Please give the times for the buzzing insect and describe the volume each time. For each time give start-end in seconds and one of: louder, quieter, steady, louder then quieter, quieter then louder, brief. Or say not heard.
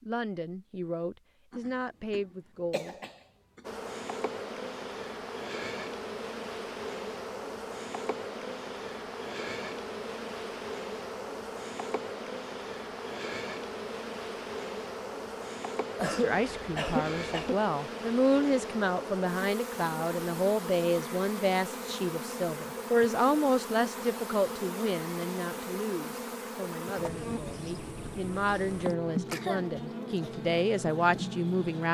3.6-31.8 steady.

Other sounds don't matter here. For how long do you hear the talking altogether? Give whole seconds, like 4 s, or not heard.
19 s.